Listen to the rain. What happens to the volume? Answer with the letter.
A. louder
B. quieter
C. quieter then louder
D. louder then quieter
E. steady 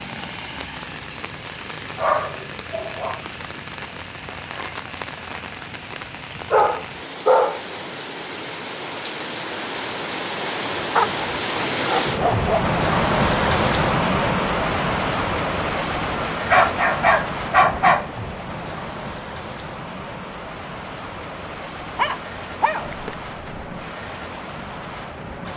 D.